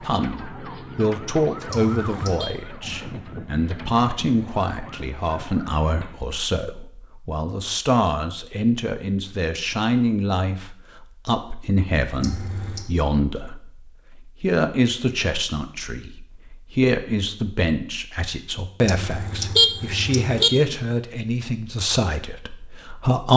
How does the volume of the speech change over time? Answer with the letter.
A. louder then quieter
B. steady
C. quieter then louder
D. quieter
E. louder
B.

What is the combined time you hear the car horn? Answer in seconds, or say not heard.
3 s.